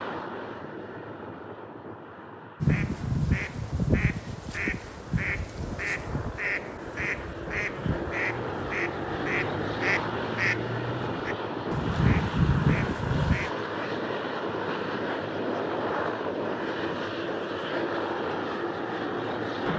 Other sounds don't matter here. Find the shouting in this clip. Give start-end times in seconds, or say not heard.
not heard.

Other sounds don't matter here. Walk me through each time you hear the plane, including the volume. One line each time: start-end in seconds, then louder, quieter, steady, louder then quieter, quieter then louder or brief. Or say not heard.
0.0-19.7 louder.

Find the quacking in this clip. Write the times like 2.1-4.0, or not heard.
2.6-13.5.